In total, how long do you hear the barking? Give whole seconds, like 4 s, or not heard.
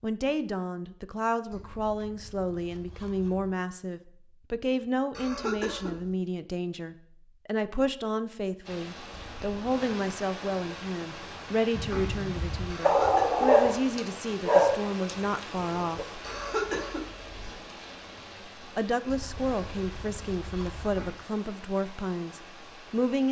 4 s.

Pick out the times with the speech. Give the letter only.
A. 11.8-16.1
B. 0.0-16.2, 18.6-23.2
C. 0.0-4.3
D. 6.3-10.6
B.